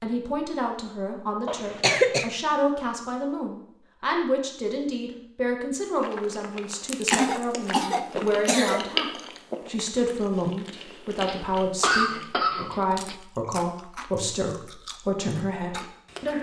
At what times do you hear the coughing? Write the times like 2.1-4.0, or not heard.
1.4-2.3, 7.1-8.8, 11.2-13.2.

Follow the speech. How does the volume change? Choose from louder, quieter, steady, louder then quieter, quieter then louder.
steady.